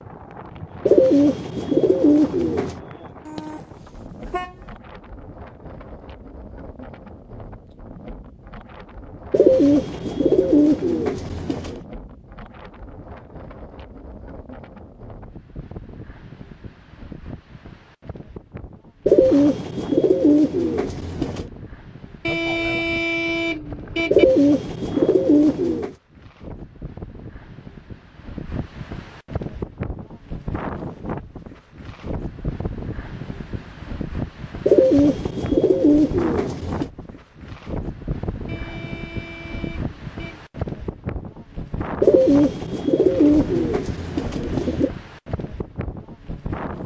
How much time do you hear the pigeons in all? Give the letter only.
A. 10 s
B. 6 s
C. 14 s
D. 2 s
C.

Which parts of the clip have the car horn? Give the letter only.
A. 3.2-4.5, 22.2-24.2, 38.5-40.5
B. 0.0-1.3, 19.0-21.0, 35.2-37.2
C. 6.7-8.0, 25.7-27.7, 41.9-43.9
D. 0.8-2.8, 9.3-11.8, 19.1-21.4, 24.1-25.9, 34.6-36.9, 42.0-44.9
A.